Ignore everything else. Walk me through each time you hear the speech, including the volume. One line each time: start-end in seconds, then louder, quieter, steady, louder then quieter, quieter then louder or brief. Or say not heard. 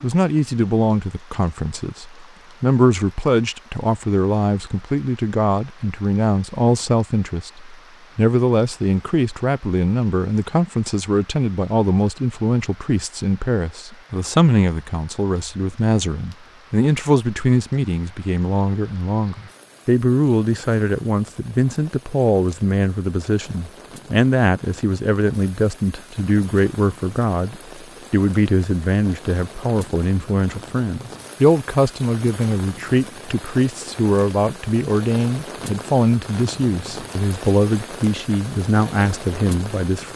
0.0-40.1 steady.